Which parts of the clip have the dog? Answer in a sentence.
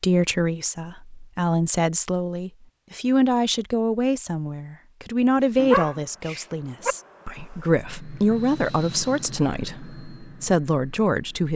The dog can be heard from 5.3 to 7.0 s.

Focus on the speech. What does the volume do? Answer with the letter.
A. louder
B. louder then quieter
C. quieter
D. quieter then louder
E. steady
E.